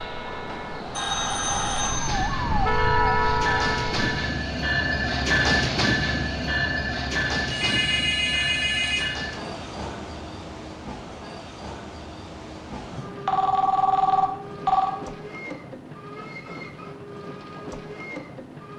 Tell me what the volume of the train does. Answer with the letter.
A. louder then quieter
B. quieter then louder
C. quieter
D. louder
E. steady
A.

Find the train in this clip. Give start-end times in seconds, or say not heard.
0.0-18.7.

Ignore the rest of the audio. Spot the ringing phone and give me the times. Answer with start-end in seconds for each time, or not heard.
0.5-2.3, 7.5-9.2, 12.9-14.9.